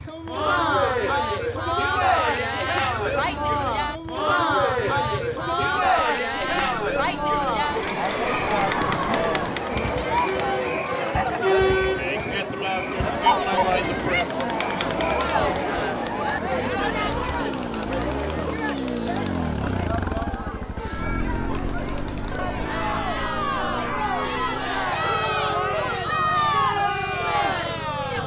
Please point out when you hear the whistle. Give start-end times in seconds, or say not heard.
not heard.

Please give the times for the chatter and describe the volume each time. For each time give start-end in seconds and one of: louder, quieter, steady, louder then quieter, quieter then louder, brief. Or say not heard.
0.1-28.2 quieter then louder.